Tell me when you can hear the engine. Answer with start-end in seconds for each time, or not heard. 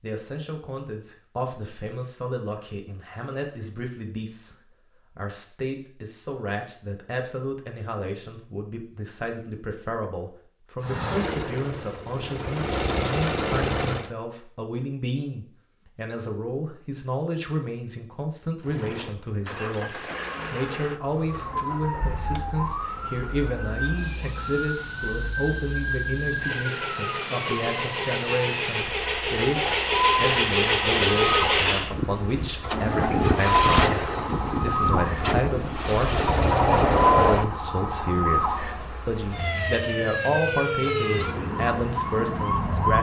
10.8-14.1, 18.6-37.9.